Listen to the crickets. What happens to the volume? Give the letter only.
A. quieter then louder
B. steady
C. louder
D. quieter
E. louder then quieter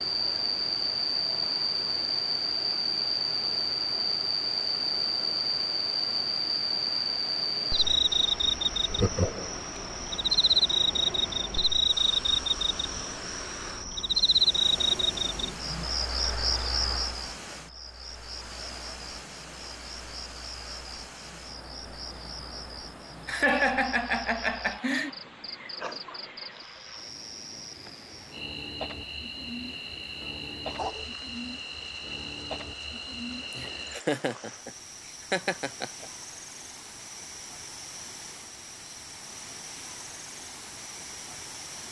D.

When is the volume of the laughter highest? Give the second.
24 s.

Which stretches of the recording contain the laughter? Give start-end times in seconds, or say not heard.
8.8-9.6, 23.2-25.1, 33.5-34.7, 35.3-36.0.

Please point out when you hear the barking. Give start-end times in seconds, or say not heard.
30.6-31.1.